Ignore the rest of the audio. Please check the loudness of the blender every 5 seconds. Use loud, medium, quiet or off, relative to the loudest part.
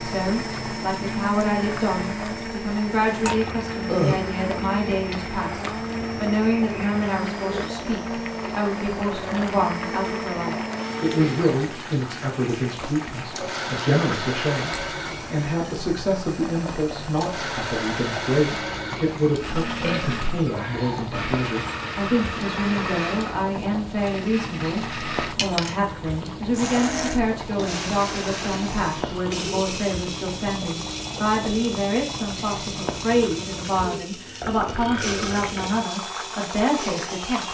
loud, loud, loud, loud, loud, loud, medium, loud.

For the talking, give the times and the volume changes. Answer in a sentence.
The talking can be heard from 0.0 to 37.5 s, at a steady volume.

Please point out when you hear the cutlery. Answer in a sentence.
The cutlery can't be heard in this clip.